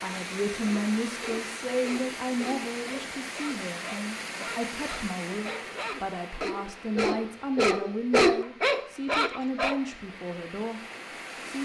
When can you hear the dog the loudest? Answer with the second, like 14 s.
8 s.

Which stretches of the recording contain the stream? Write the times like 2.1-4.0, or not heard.
0.0-11.6.